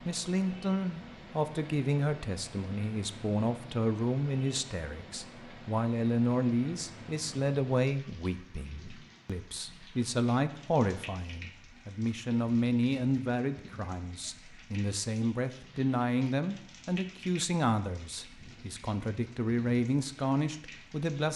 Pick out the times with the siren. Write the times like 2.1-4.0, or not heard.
not heard.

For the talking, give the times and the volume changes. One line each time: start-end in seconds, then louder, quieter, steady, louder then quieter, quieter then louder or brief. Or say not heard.
0.0-21.3 steady.